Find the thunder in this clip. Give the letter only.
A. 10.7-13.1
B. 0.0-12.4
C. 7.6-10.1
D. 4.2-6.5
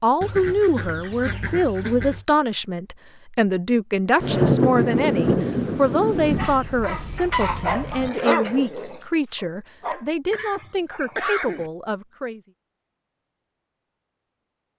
D.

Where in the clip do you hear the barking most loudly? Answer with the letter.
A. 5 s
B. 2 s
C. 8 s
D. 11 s
C.